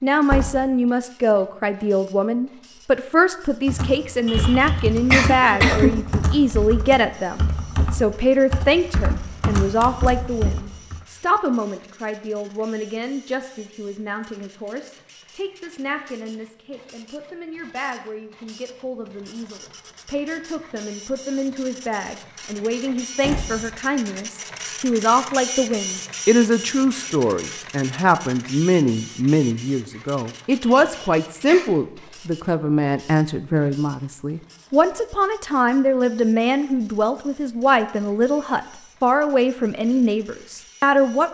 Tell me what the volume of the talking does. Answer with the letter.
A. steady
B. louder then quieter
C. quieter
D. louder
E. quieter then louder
E.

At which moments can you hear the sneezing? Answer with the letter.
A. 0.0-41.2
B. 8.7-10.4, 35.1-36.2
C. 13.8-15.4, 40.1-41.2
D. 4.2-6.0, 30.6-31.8
D.